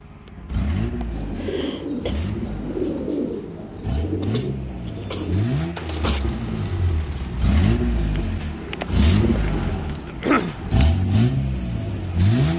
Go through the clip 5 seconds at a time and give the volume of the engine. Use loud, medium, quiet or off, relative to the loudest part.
medium, loud, loud.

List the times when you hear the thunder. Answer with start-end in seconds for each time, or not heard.
not heard.